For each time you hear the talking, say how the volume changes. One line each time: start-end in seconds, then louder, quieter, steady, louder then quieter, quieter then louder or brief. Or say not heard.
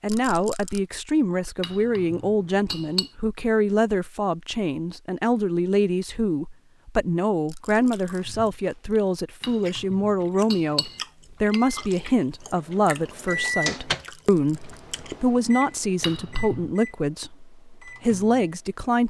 0.0-19.0 steady.